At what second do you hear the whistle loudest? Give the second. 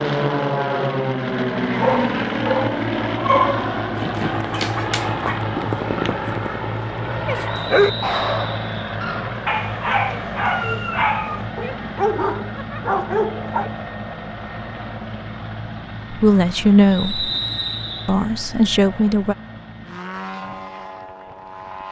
17 s.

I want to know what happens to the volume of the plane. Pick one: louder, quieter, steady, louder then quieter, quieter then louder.
quieter.